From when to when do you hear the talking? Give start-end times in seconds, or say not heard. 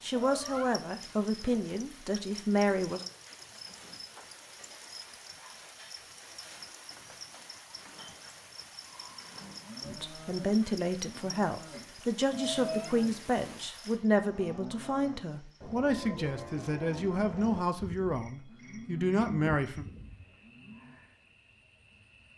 0.0-3.0, 9.8-19.9.